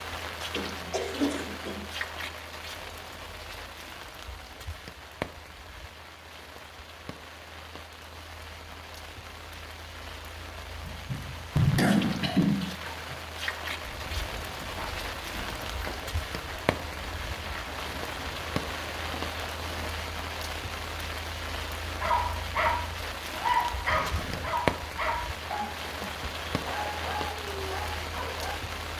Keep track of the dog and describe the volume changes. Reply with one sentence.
The loudness of the dog goes down.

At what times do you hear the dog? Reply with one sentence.
You can hear the dog from 22.0 to 28.6 s.